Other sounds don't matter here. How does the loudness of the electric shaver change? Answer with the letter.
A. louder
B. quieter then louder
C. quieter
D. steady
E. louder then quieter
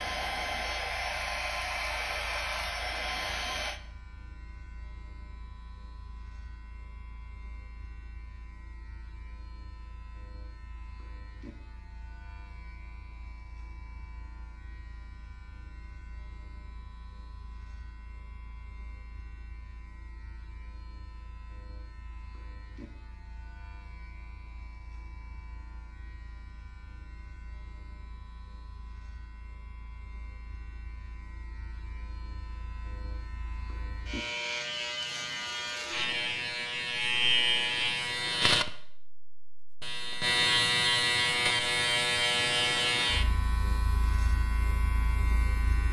A.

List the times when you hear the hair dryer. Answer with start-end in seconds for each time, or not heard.
0.0-3.8.